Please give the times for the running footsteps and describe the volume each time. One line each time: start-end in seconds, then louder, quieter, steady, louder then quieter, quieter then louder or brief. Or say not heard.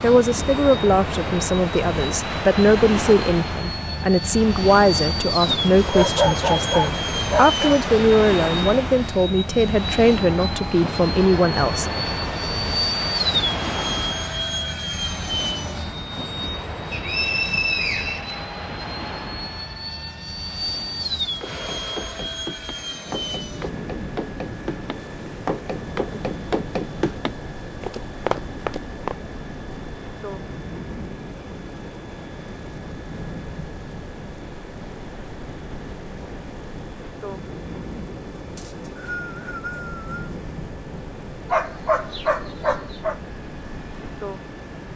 21.2-29.1 louder.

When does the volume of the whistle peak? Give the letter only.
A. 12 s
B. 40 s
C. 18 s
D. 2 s
C.